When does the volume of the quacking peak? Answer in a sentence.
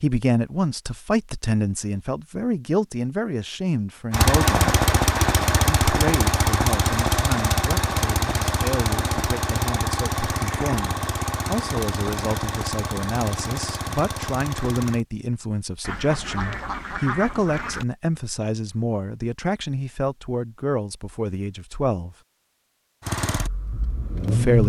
The volume of the quacking peaks at 17 seconds.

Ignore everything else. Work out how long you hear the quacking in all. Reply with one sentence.
The quacking can be heard for 2 seconds in total.